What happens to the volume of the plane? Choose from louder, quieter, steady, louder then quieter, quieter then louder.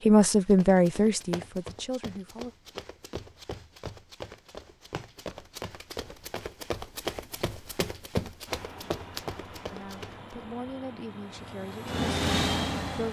louder.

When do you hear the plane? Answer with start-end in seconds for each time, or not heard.
8.4-13.0.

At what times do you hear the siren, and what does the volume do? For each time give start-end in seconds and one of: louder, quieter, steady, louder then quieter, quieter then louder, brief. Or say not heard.
not heard.